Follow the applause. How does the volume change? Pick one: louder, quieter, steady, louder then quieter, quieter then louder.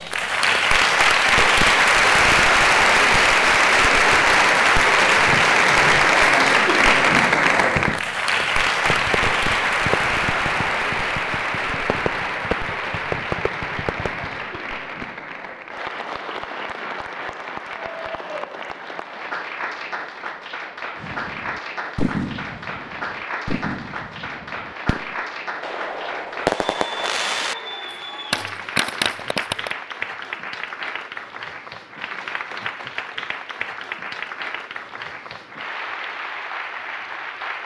quieter.